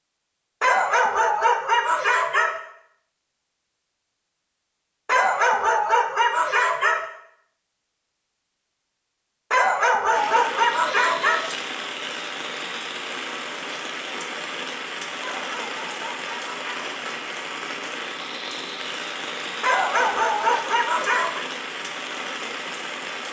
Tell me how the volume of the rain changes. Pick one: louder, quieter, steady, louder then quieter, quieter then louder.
steady.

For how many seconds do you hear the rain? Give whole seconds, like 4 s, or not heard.
13 s.